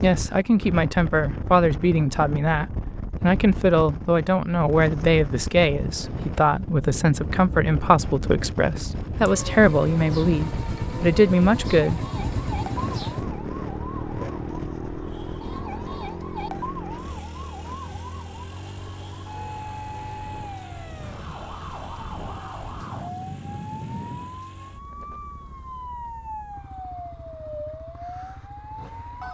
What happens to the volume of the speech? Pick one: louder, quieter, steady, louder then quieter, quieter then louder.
steady.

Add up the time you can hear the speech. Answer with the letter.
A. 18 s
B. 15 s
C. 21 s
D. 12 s
D.